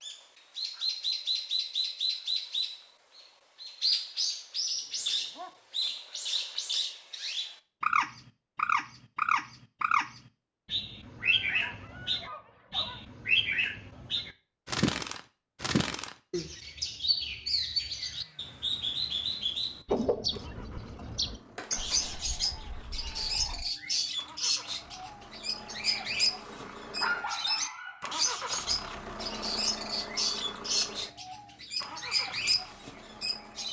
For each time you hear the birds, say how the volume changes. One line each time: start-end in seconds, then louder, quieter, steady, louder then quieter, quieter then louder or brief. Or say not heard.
0.0-33.6 steady.